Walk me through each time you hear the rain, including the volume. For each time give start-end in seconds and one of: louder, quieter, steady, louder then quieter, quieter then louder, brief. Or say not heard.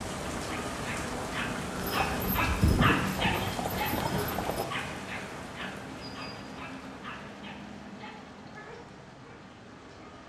0.0-10.2 quieter.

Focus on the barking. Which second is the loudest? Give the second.
3 s.